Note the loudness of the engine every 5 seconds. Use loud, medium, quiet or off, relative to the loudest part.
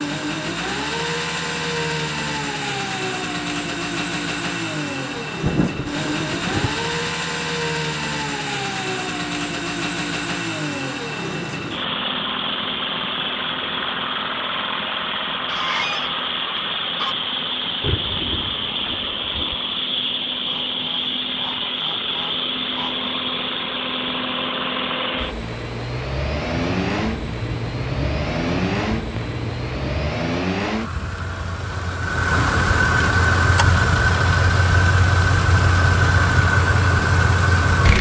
medium, medium, medium, medium, medium, medium, loud, loud.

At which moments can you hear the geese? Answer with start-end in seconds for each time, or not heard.
15.4-17.1, 20.4-23.1.